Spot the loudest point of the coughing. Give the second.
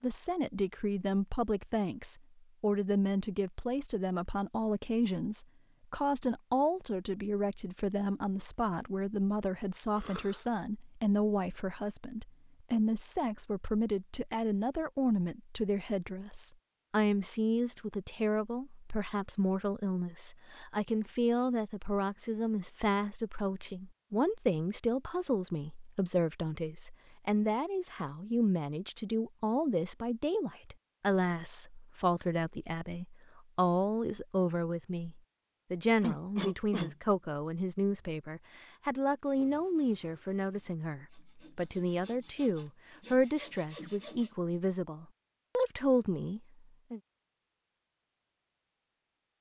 36 s.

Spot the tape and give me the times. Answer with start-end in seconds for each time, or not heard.
not heard.